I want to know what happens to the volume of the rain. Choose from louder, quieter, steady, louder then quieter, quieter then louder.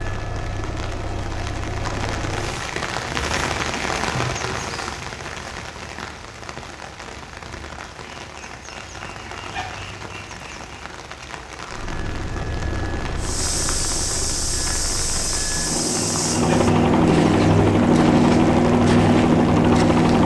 quieter.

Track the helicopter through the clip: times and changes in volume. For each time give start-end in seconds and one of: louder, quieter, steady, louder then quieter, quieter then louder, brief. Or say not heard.
0.0-2.7 brief
11.7-20.2 louder.